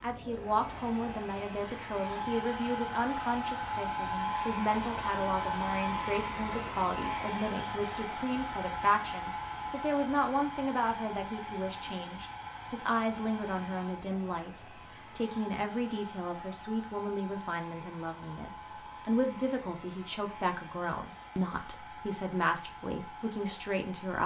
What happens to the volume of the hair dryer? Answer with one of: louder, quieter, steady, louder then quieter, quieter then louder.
quieter.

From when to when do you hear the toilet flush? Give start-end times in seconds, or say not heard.
not heard.